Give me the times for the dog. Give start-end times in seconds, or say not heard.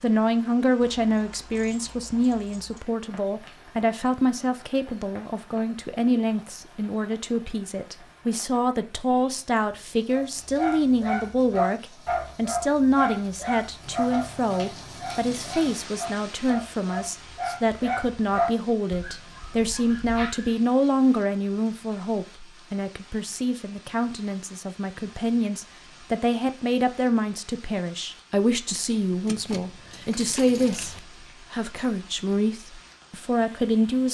10.1-20.6.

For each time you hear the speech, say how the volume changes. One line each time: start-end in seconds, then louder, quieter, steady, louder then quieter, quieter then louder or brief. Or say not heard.
0.0-34.1 steady.